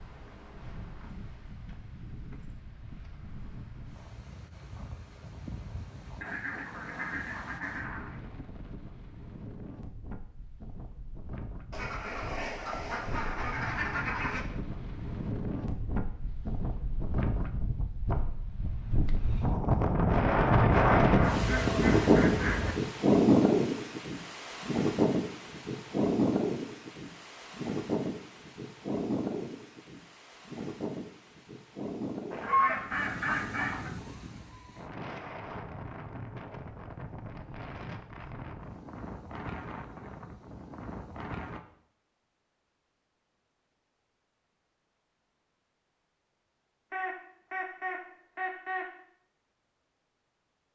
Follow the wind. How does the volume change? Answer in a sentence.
The volume of the wind goes up, then down.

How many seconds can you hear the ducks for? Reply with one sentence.
You can hear the ducks for 10 seconds altogether.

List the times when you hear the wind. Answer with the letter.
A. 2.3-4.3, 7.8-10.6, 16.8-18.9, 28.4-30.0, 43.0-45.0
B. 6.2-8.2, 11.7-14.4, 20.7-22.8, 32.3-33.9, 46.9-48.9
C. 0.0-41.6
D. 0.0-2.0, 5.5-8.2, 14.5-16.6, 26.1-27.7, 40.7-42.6
C.